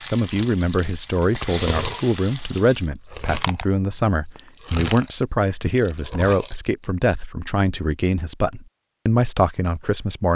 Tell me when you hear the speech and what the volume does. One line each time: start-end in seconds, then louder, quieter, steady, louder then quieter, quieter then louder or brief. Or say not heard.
0.1-10.3 steady.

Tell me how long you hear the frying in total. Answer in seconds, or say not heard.
3 s.